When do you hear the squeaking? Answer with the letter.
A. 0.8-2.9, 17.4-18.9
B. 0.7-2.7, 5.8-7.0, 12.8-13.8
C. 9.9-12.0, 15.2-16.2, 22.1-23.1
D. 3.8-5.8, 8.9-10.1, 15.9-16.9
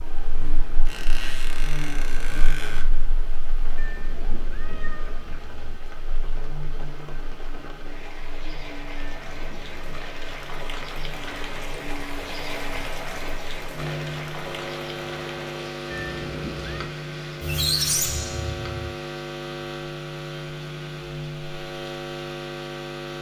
A.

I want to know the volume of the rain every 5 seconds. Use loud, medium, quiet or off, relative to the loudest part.
medium, medium, loud, medium, medium.